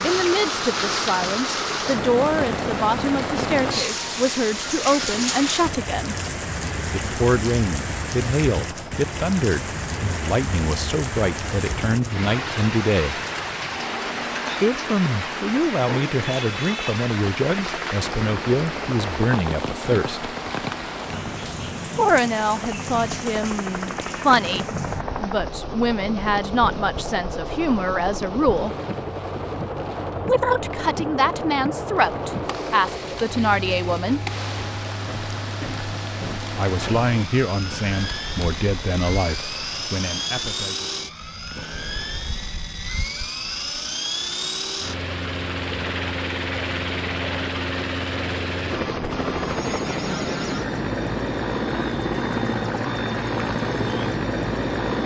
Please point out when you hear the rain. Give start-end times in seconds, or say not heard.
0.0-40.5.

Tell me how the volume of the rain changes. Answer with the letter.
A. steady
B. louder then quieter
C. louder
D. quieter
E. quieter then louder
D.